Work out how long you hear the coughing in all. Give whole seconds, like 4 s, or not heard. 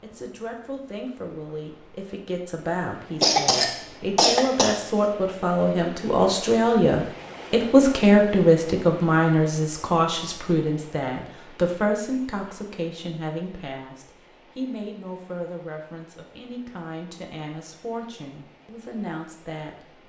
2 s.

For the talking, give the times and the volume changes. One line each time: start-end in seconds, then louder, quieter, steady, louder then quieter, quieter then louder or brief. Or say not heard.
0.0-20.0 louder then quieter.